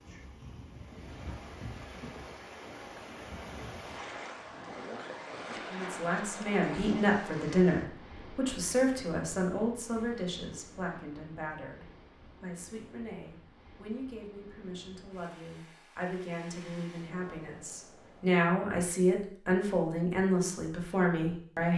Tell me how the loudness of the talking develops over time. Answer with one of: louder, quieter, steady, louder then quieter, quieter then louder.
quieter then louder.